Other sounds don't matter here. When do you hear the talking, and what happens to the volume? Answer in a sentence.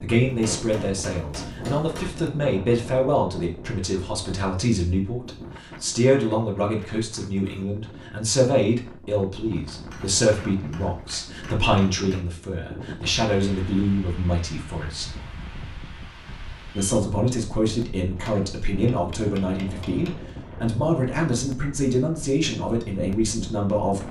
You can hear the talking from 0.0 to 15.1 s, at a steady volume; and from 16.8 to 24.0 s, at a steady volume.